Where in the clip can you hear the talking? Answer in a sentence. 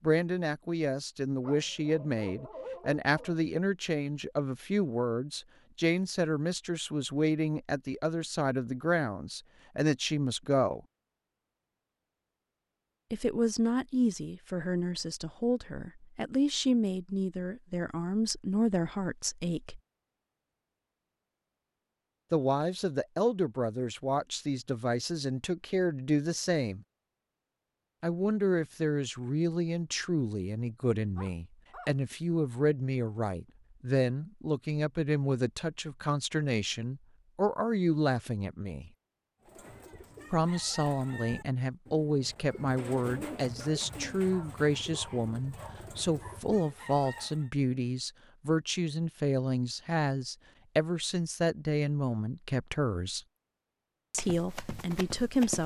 The talking can be heard from 0.0 to 10.8 s, from 13.1 to 19.8 s, from 22.3 to 26.8 s, from 28.0 to 38.9 s, from 40.3 to 53.2 s and from 54.1 to 55.6 s.